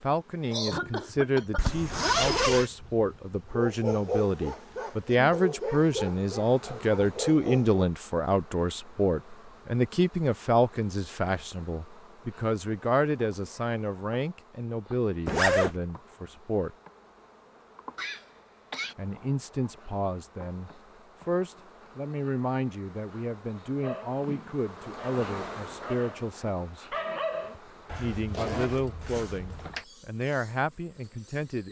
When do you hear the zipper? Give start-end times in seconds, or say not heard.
1.6-2.7, 15.2-15.8, 27.9-29.9.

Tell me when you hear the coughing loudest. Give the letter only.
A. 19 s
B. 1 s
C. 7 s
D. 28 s
B.